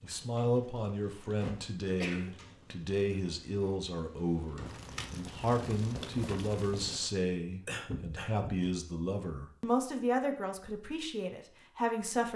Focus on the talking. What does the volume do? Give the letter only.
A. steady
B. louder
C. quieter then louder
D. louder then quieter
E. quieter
A.